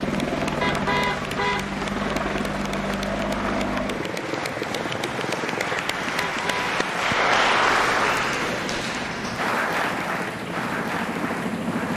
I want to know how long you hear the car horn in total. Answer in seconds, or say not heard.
2 s.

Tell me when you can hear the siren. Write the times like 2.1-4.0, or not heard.
not heard.